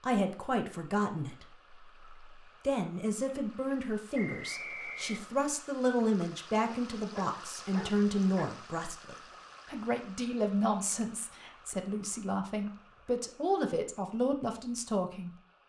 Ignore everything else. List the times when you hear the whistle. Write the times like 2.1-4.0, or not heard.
4.1-5.3.